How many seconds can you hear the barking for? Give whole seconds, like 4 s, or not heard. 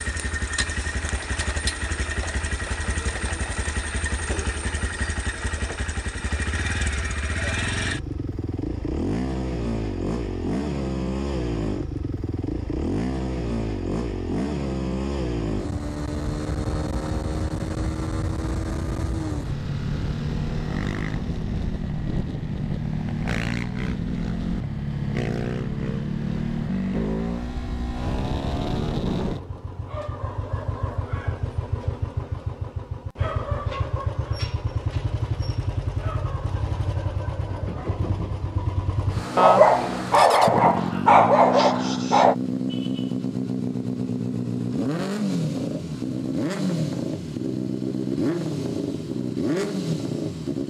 3 s.